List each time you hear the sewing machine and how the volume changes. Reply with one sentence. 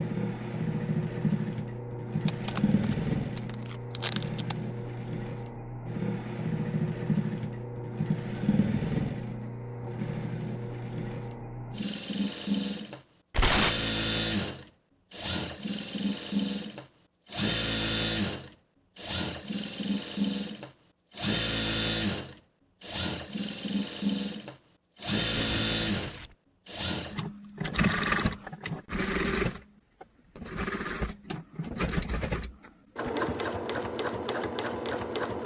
You can hear the sewing machine from 0.0 to 35.4 s, at a steady volume.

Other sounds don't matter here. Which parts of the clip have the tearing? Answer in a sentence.
The tearing can be heard from 2.2 to 4.5 s, from 13.3 to 13.9 s and from 25.2 to 26.3 s.